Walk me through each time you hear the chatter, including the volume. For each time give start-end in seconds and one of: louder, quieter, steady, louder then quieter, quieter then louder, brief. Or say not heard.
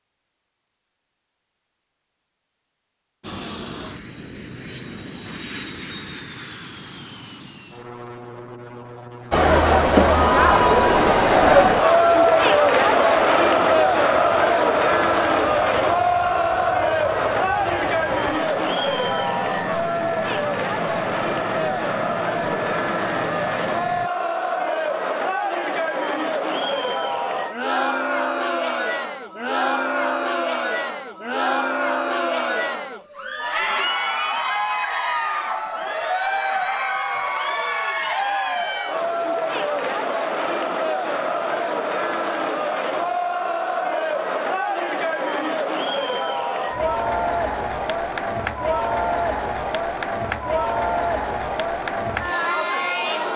9.3-53.3 quieter.